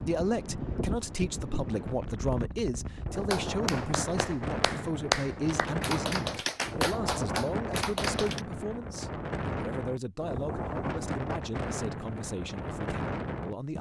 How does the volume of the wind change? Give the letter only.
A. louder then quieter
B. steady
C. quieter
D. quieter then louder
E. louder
B.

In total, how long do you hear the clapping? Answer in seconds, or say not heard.
5 s.